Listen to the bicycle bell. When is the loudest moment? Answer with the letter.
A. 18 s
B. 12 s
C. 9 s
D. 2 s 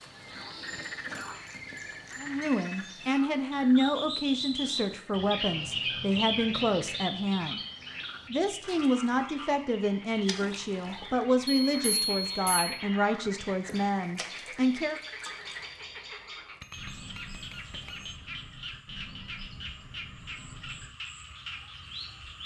B.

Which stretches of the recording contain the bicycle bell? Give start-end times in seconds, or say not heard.
0.7-2.3, 11.7-12.8, 16.6-18.2.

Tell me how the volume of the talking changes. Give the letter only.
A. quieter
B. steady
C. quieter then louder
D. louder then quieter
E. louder
B.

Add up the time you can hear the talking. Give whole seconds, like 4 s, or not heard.
12 s.